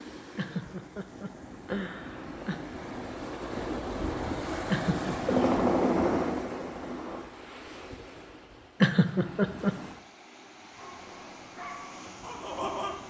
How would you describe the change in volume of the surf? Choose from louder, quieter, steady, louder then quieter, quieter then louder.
louder then quieter.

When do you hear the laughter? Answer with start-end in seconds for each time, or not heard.
0.3-2.6, 4.7-5.3, 8.8-9.8.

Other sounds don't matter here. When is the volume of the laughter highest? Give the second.
9 s.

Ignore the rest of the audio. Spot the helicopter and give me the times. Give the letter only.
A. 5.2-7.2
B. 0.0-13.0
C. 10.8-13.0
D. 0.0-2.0
A.